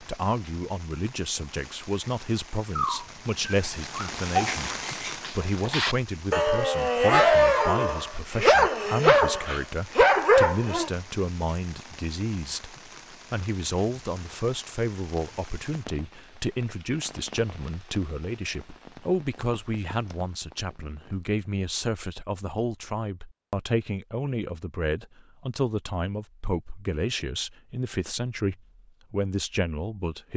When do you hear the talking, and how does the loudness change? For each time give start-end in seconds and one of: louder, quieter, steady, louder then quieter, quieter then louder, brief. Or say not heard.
0.0-30.3 steady.